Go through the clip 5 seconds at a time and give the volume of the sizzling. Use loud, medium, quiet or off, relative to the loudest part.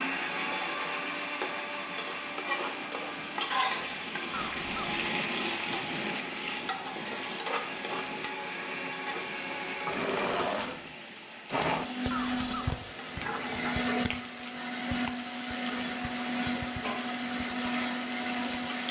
loud, loud, medium, medium.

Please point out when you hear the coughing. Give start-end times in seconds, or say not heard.
4.3-5.0, 12.1-12.8.